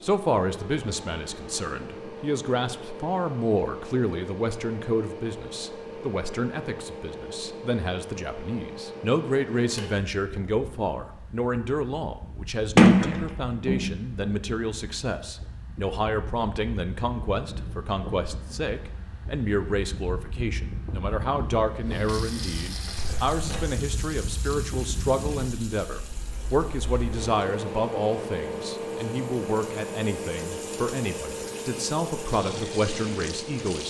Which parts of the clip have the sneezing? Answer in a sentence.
You can't hear the sneezing here.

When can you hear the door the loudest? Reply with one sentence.
The loudest moment of the door is at 13 seconds.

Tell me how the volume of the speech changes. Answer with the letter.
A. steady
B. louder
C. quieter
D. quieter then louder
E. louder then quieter
A.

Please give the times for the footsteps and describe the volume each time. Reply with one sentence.
The footsteps can't be heard in this clip.